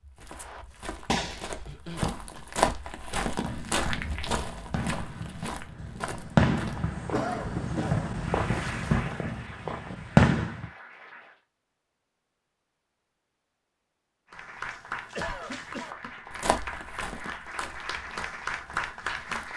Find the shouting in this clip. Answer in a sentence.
You can't hear the shouting here.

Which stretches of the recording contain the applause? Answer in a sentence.
You can hear the applause from 8.1 to 11.4 s and from 14.3 to 19.5 s.